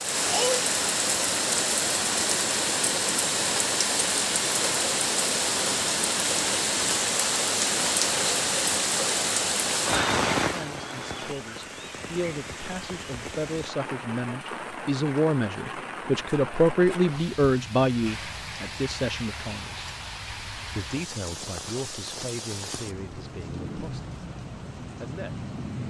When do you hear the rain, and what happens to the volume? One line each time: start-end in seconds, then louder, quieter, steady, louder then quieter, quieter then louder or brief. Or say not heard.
0.0-25.8 quieter.